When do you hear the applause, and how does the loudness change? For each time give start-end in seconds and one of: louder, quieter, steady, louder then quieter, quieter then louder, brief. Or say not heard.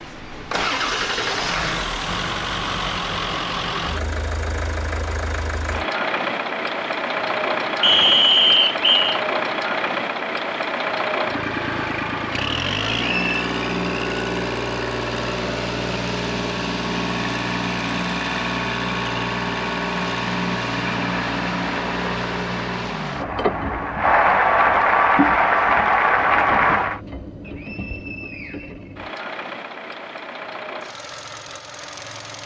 20.8-27.0 louder.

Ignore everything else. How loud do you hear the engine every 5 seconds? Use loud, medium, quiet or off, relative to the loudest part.
loud, loud, loud, loud, loud, medium, medium.